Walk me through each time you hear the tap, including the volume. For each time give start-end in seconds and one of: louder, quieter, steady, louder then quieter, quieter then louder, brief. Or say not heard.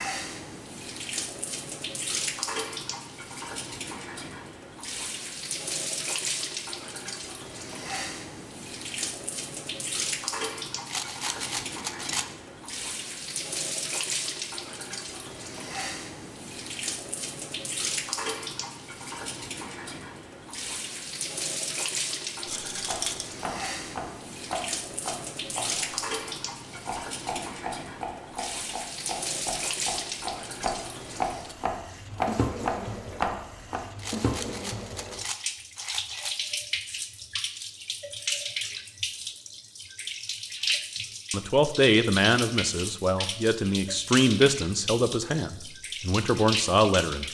0.0-47.2 steady.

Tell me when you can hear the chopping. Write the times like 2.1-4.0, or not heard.
22.8-33.9.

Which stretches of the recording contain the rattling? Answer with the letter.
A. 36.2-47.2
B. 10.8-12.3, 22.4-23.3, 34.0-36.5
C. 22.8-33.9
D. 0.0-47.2
B.